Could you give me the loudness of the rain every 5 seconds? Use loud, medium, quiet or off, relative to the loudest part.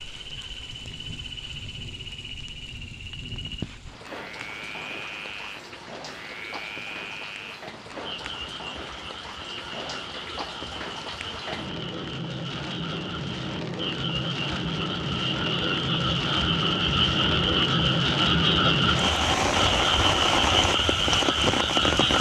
quiet, quiet, medium, loud, loud.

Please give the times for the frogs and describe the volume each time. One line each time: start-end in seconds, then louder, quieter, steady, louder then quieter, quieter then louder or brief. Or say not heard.
0.0-22.1 louder.